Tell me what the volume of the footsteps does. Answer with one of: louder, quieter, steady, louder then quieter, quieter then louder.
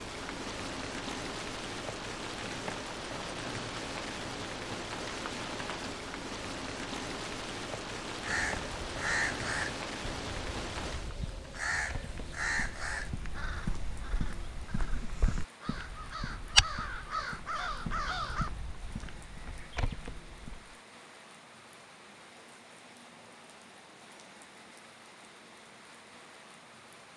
louder then quieter.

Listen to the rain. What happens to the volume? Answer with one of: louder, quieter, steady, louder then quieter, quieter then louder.
quieter.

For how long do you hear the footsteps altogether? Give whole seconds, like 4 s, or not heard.
9 s.